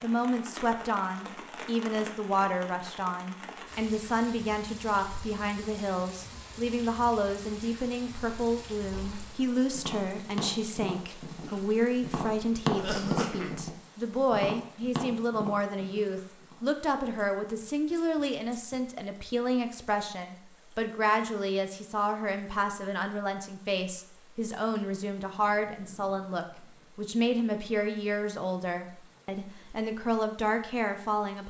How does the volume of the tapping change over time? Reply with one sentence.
The loudness of the tapping goes up, then down.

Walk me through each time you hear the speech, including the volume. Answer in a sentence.
You can hear the speech from 0.0 to 31.4 s, at a steady volume.